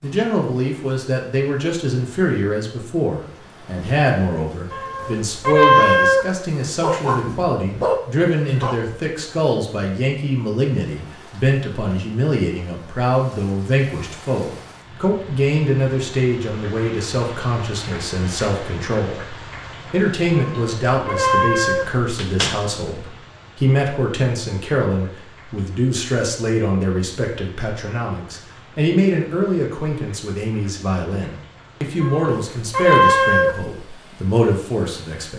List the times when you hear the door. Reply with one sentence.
You can hear the door from 21.8 to 22.8 s.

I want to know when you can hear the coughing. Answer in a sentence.
The coughing can't be heard in this clip.